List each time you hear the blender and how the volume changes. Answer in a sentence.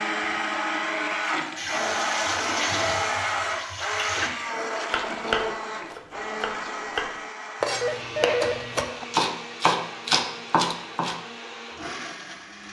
The blender can be heard from 0.0 to 12.6 s, getting quieter.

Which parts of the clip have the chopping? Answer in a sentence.
You can hear the chopping from 4.9 to 11.2 s.